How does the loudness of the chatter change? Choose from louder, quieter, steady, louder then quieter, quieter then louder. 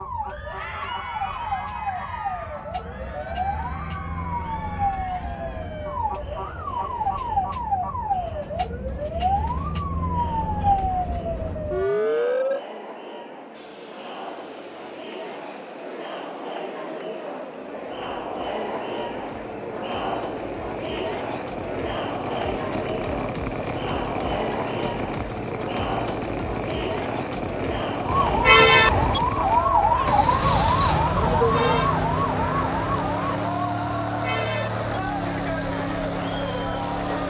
louder.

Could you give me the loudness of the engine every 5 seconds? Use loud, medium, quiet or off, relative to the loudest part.
off, off, quiet, quiet, loud, loud, loud, loud.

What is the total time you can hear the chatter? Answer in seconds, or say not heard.
37 s.